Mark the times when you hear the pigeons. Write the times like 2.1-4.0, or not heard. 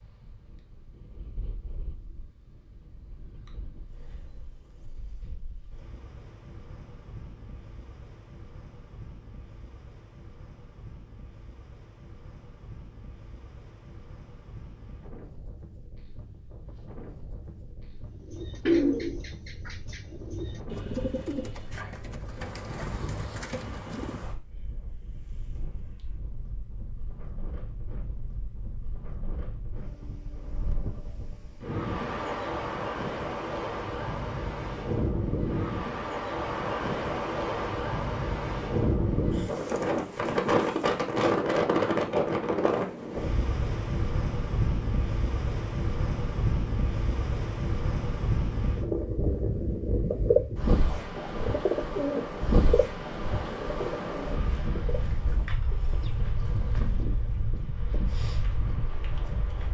18.2-24.2, 50.1-56.1.